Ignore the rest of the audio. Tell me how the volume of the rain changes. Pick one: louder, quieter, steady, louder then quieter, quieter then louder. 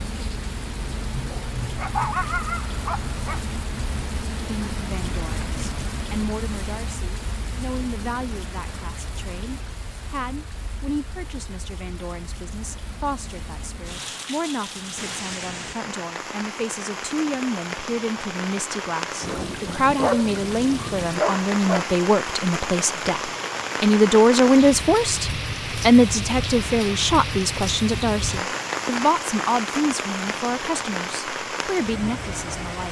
quieter then louder.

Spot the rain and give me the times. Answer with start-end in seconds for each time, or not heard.
0.0-32.8.